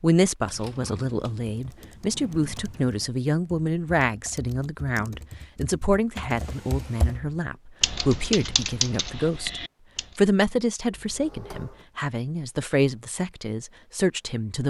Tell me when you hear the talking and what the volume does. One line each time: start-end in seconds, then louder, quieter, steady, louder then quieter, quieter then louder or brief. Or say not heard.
0.0-14.6 steady.